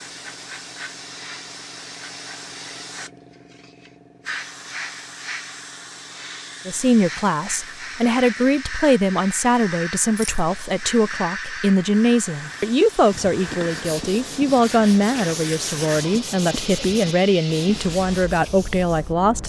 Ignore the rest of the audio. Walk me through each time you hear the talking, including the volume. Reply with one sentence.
You can hear the talking from 6.7 to 19.4 s, at a steady volume.